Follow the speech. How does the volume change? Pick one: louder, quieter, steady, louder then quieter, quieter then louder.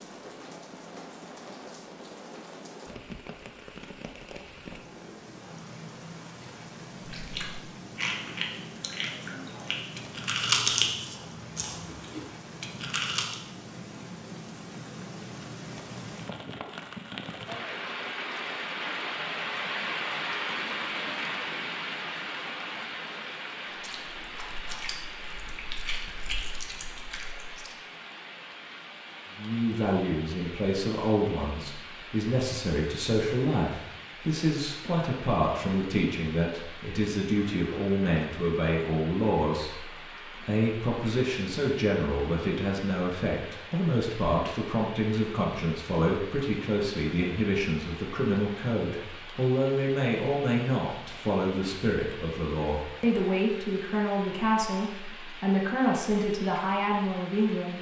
steady.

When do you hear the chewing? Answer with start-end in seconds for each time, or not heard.
7.0-13.3, 23.7-27.8.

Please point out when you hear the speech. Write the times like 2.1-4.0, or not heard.
29.4-57.7.